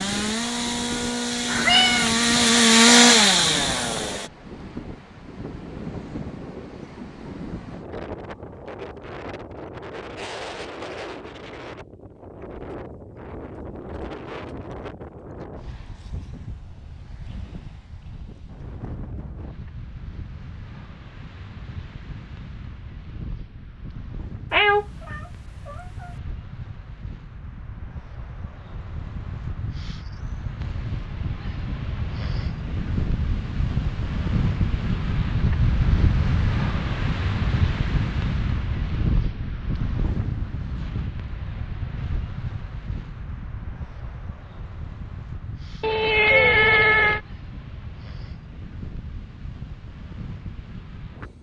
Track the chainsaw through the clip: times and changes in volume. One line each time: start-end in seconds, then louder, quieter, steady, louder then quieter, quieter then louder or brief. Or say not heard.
0.0-4.3 louder then quieter.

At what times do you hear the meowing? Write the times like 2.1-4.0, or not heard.
1.4-2.1, 24.5-26.1, 45.8-47.2.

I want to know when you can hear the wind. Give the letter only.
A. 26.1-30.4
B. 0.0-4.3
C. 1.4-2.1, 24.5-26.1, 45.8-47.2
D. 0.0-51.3
D.